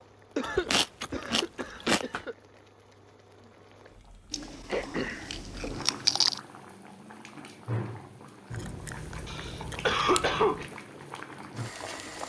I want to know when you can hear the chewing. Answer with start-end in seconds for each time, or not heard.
0.4-2.2, 4.3-6.4, 8.5-10.4.